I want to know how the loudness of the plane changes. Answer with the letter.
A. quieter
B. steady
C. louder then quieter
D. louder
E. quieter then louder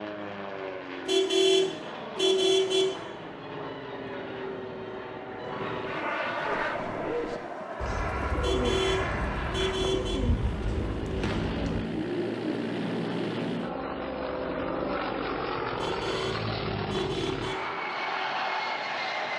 D.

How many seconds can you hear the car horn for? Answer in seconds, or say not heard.
6 s.